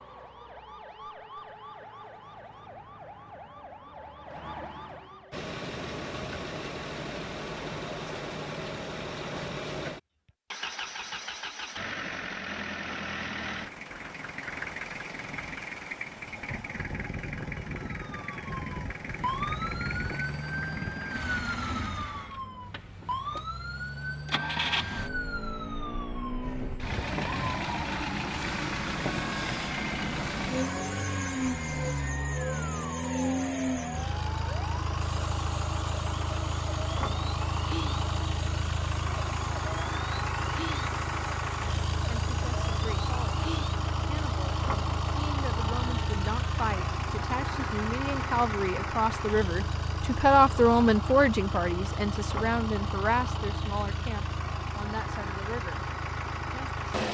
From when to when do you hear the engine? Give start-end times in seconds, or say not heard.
5.3-57.0.